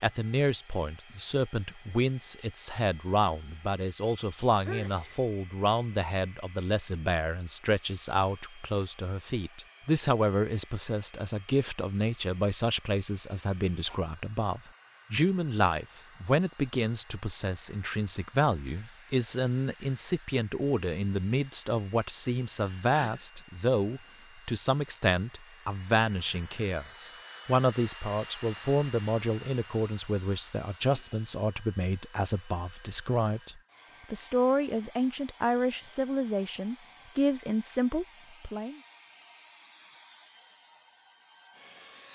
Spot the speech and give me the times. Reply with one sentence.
You can hear the speech from 0.0 to 38.8 s.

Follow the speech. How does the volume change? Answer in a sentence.
The loudness of the speech stays about the same.